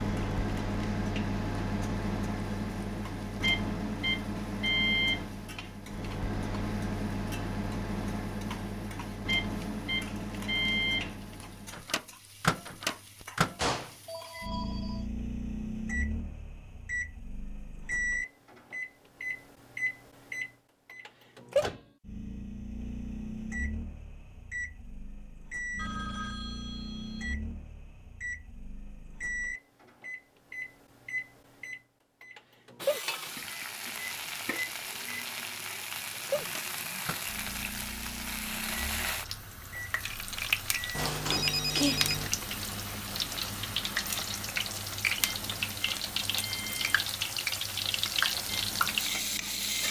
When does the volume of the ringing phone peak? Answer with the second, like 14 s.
42 s.